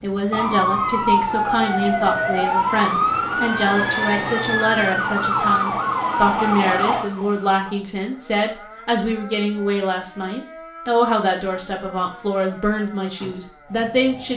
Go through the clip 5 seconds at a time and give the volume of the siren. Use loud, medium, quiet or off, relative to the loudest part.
loud, loud, quiet.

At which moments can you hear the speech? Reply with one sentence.
The speech can be heard from 0.0 to 14.3 s.